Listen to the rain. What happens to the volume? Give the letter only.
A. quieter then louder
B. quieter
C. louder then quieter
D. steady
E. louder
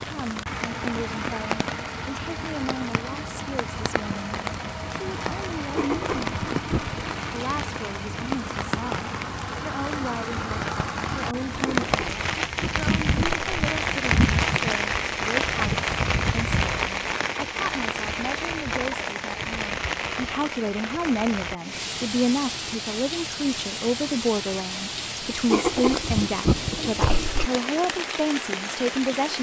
C.